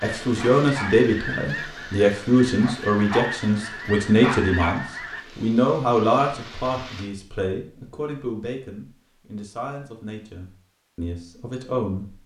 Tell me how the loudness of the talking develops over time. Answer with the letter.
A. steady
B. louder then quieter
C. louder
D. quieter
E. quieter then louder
D.